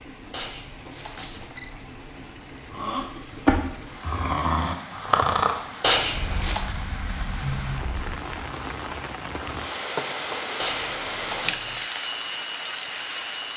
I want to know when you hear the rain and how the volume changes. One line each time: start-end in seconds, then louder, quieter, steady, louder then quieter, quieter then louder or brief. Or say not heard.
0.0-13.5 louder.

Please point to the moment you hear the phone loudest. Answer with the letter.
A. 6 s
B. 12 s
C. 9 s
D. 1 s
A.